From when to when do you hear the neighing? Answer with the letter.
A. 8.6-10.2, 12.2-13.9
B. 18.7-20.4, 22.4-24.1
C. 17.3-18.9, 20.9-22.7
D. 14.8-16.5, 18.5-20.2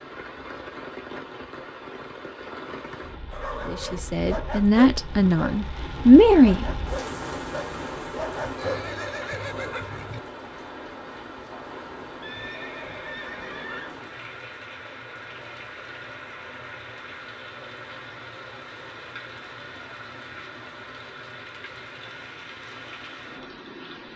A.